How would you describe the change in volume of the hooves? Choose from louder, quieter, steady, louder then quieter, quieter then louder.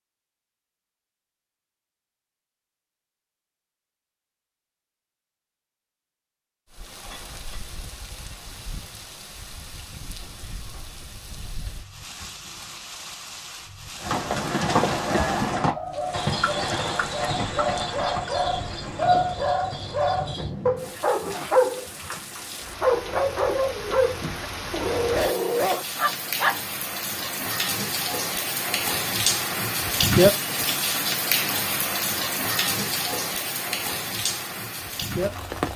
quieter.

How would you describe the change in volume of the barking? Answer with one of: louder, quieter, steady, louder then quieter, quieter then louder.
louder.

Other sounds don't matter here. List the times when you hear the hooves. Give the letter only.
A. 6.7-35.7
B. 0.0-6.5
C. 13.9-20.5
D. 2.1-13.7
C.